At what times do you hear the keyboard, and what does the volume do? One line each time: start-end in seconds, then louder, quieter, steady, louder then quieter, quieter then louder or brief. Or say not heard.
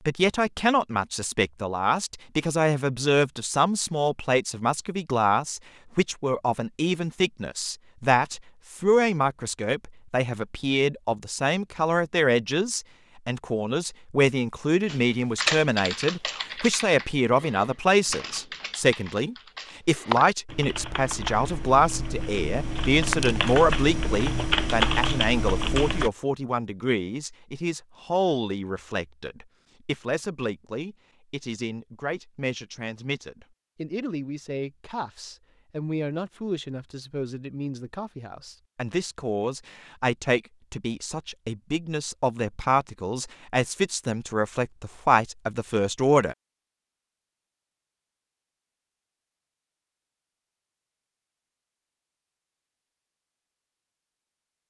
14.8-26.1 quieter then louder.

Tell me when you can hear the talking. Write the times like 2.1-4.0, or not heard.
0.1-46.4.